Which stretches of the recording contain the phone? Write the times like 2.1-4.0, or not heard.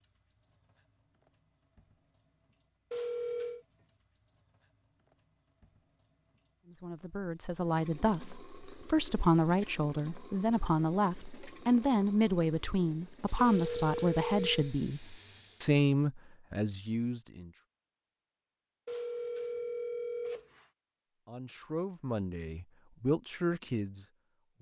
2.9-3.6, 13.3-14.8, 18.9-20.6.